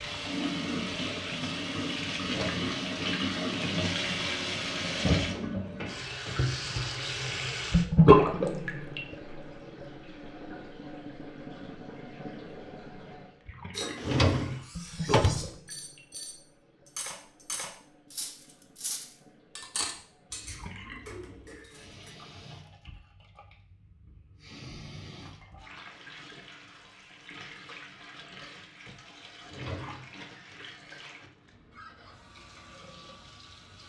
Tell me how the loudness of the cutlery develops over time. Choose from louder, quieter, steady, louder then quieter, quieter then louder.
louder then quieter.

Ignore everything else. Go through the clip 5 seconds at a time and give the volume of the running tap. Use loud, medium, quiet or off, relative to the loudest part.
medium, loud, quiet, quiet, quiet, quiet, quiet.